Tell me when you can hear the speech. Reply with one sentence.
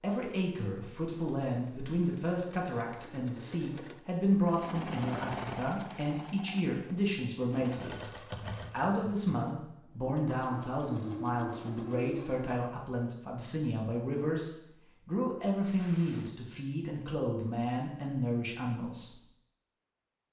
The speech can be heard from 0.0 to 19.2 s.